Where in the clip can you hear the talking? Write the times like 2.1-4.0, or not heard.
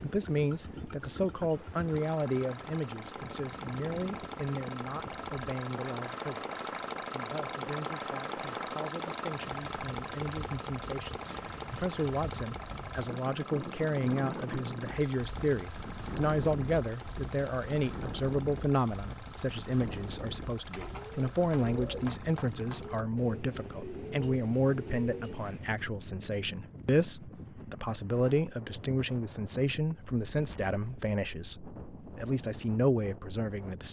0.0-33.8.